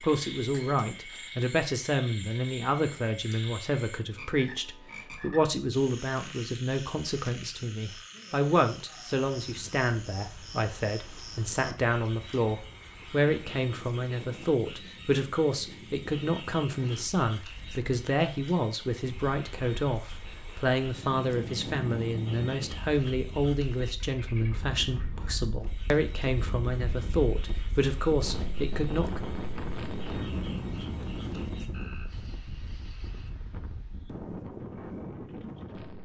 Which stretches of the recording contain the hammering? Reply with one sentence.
You can't hear the hammering here.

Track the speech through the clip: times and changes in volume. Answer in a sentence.
You can hear the speech from 0.0 to 29.2 s, at a steady volume.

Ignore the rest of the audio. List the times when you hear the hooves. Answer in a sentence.
You can't hear the hooves here.